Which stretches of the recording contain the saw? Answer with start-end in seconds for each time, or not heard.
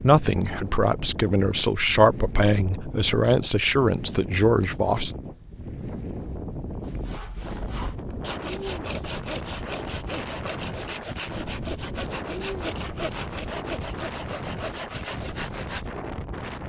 6.8-15.9.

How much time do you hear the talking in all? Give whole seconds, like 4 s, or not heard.
5 s.